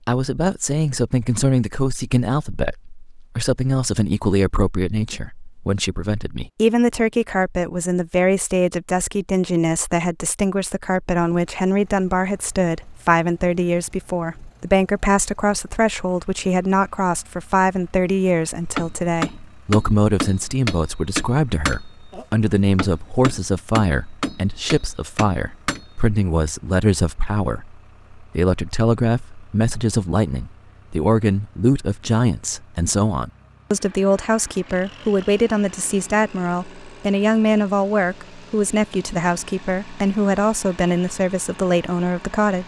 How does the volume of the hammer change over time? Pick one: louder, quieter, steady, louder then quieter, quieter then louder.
quieter.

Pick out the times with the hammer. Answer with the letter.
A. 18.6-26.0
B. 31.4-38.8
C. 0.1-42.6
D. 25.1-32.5
A.